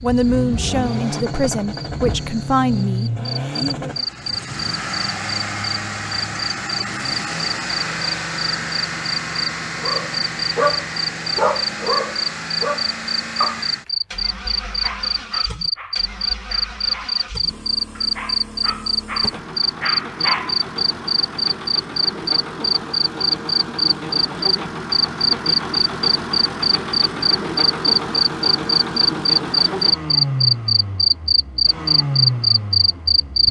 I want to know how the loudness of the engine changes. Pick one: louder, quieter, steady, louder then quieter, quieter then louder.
quieter then louder.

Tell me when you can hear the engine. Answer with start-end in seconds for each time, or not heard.
0.0-33.4.